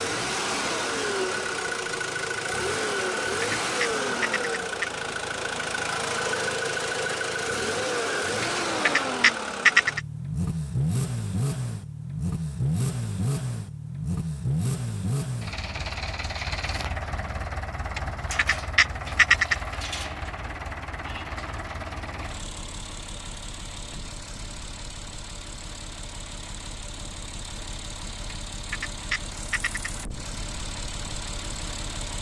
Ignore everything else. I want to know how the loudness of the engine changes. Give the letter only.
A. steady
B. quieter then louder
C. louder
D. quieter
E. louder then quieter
D.